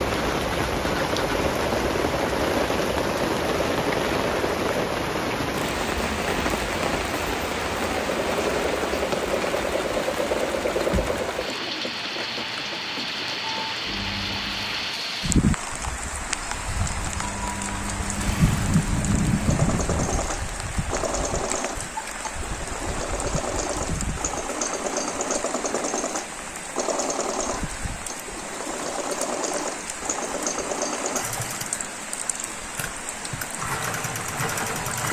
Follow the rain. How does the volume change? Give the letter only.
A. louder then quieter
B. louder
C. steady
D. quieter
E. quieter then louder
D.